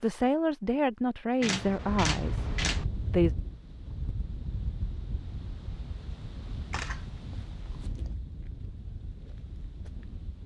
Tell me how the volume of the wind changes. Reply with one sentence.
The volume of the wind goes down.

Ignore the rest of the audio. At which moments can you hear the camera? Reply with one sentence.
The camera can be heard from 1.4 to 2.9 s and from 6.7 to 8.1 s.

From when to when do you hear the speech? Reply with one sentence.
The speech can be heard from 0.0 to 3.4 s.